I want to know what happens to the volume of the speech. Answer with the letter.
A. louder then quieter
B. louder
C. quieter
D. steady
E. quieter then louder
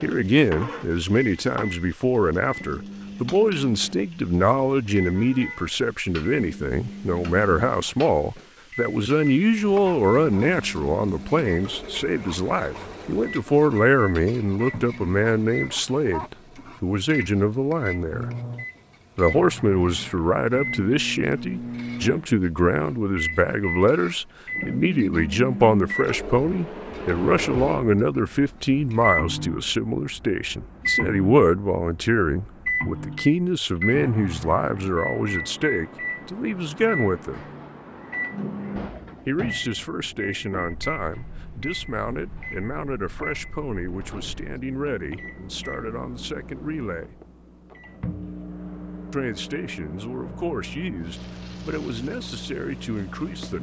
C.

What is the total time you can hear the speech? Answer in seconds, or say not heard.
49 s.